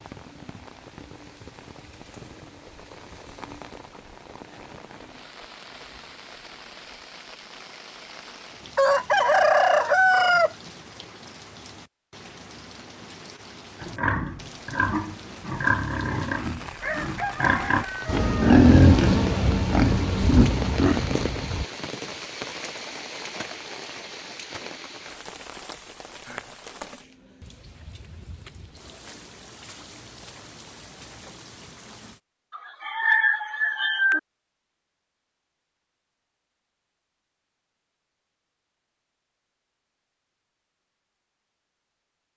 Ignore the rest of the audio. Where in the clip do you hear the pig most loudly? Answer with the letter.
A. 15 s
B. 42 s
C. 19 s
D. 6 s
C.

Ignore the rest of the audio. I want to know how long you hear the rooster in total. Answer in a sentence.
You can hear the rooster for 5 seconds altogether.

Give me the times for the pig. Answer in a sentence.
The pig can be heard from 13.8 to 21.6 s.